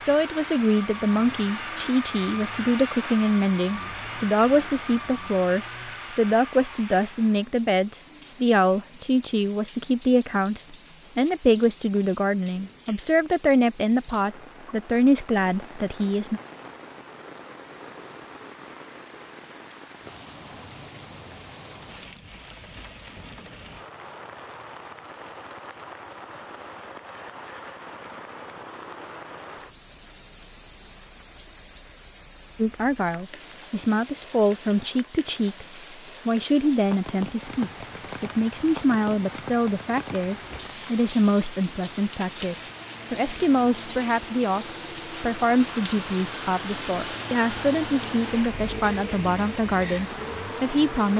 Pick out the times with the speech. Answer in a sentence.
You can hear the speech from 0.1 to 16.4 s, from 32.5 to 35.6 s and from 36.2 to 51.1 s.